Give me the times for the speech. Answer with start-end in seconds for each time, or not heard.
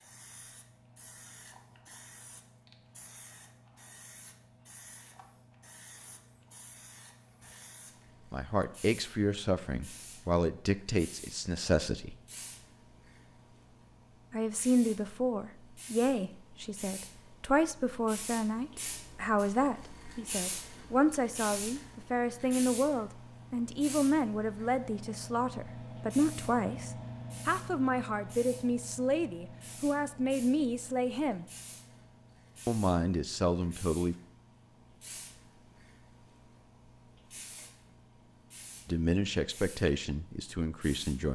8.3-12.2, 14.3-31.4, 32.6-34.1, 38.9-41.3.